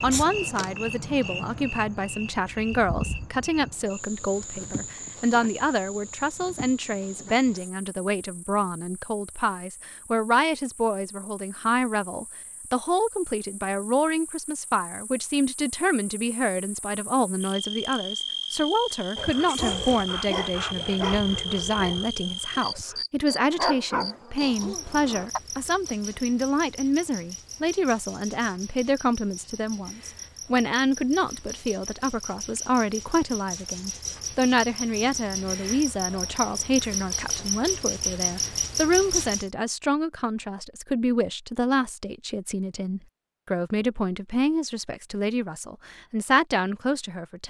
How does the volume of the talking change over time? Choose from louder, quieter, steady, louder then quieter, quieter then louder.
steady.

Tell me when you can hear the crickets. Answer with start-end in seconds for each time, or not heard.
0.0-39.5.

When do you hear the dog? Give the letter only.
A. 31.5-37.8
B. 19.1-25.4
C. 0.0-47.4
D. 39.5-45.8
B.